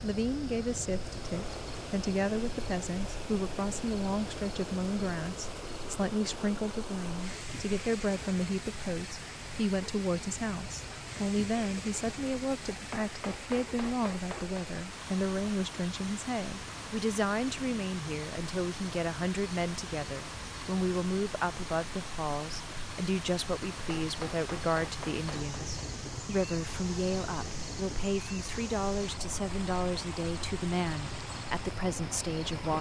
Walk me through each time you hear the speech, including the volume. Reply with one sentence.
You can hear the speech from 0.0 to 32.7 s, at a steady volume.